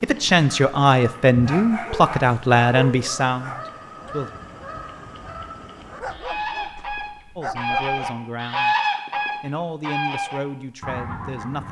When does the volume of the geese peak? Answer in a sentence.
The volume of the geese peaks at 9 seconds.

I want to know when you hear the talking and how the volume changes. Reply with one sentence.
You can hear the talking from 0.0 to 4.3 s, getting quieter; briefly from 7.3 to 8.8 s; and briefly from 9.4 to 11.6 s.